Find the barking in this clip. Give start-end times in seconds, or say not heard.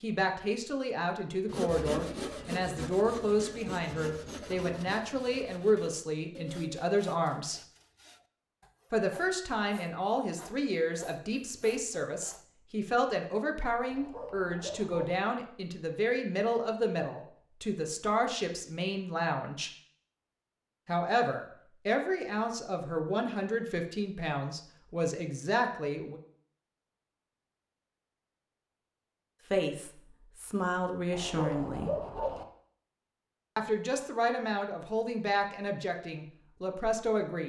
13.8-15.2, 31.1-32.5.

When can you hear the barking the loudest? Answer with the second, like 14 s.
32 s.